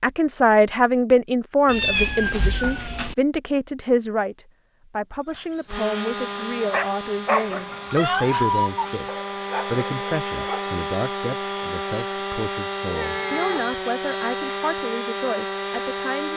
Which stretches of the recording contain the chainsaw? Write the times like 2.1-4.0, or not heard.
5.7-16.3.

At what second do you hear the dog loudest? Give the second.
7 s.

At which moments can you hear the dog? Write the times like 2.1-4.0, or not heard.
5.2-10.8.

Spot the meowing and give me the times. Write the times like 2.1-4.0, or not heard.
1.6-3.1, 7.9-8.8, 12.9-13.7.